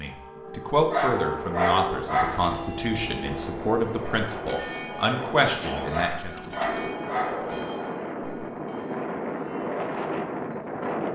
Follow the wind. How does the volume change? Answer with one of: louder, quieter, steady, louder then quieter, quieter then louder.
louder.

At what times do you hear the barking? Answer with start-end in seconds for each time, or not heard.
0.9-2.6, 5.9-7.7.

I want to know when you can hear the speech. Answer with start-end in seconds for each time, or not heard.
0.0-6.4.